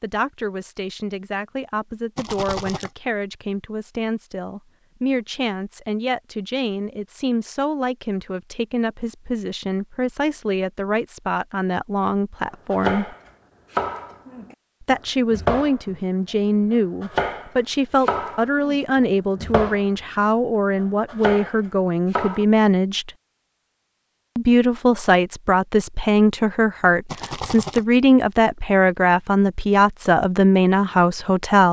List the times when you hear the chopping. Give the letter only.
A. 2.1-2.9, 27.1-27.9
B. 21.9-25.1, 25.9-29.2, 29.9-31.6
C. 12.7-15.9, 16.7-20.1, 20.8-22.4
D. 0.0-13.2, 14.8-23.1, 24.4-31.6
C.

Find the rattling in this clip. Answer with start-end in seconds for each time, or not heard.
2.1-2.9, 27.1-27.9.